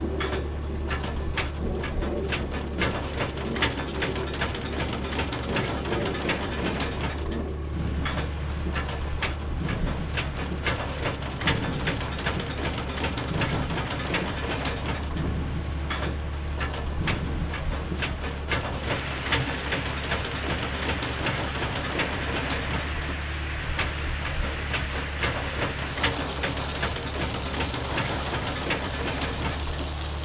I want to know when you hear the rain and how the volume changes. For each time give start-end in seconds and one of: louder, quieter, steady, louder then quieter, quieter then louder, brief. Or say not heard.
0.0-30.2 steady.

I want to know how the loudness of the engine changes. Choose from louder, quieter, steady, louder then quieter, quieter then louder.
steady.